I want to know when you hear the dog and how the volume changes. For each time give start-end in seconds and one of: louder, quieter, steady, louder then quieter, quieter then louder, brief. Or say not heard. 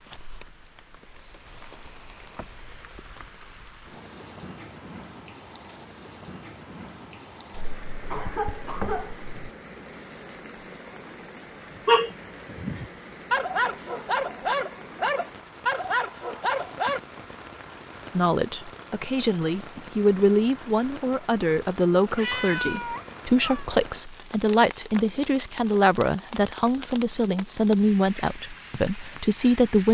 11.8-17.0 louder.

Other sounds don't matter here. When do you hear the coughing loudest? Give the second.
9 s.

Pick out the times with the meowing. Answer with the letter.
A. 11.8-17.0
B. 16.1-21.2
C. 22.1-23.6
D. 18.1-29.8
C.